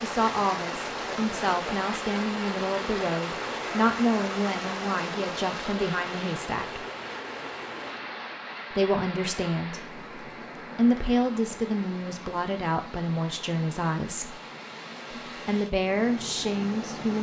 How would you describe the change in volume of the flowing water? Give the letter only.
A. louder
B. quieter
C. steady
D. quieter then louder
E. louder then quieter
B.